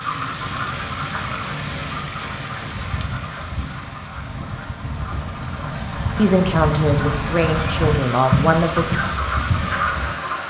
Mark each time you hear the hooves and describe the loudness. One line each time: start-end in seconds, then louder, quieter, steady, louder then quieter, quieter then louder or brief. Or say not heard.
0.3-10.2 louder.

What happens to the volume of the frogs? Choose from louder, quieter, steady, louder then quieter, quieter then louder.
quieter then louder.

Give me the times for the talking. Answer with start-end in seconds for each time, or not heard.
5.6-9.0.